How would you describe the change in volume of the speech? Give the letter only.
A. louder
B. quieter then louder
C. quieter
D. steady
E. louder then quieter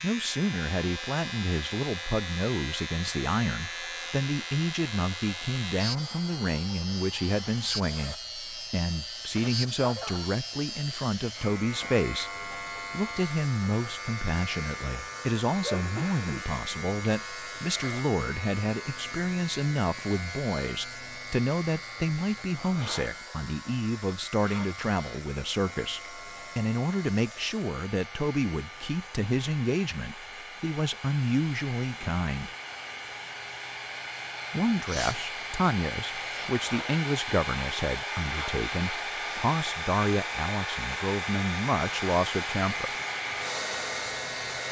D.